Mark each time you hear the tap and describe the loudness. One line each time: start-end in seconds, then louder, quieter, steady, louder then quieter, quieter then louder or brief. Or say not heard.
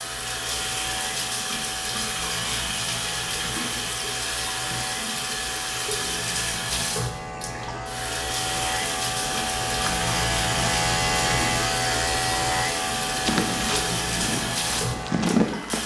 0.0-15.8 steady.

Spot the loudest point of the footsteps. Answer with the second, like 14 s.
15 s.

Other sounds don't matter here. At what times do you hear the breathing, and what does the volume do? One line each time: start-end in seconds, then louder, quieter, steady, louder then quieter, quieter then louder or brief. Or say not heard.
not heard.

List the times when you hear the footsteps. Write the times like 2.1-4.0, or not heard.
13.2-15.8.